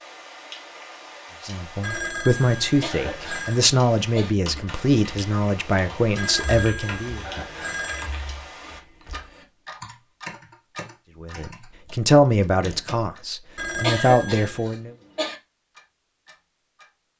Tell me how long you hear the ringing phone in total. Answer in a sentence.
You can hear the ringing phone for 5 seconds altogether.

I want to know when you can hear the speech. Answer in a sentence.
You can hear the speech from 1.4 to 7.2 s and from 11.2 to 14.9 s.